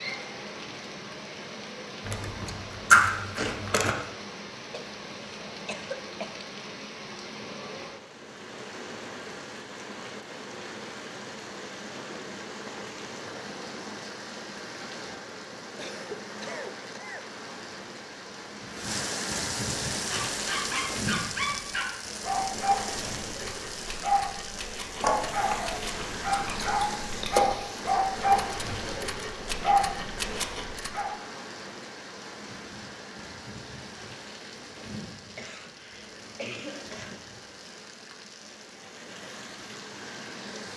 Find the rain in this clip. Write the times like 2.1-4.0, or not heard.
0.0-40.7.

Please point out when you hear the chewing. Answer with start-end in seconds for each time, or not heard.
2.0-4.0, 24.9-27.8.